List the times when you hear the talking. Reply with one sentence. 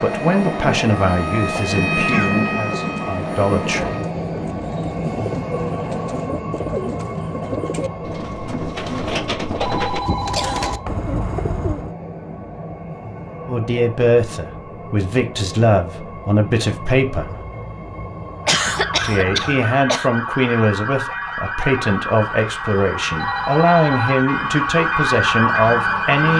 You can hear the talking from 0.0 to 4.0 s, from 13.4 to 17.4 s and from 19.0 to 26.3 s.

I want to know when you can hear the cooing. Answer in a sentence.
You can hear the cooing from 2.6 to 11.9 s.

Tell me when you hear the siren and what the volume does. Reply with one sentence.
You can hear the siren from 0.0 to 4.1 s, getting louder then quieter; and from 18.4 to 26.3 s, getting louder.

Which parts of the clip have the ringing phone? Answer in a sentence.
You can hear the ringing phone from 9.6 to 10.8 s and from 23.1 to 24.2 s.